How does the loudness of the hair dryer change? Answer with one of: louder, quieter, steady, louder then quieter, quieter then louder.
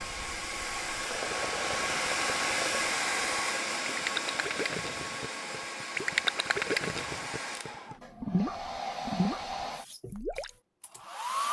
quieter.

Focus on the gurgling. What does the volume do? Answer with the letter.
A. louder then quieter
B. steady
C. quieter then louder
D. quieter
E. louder
E.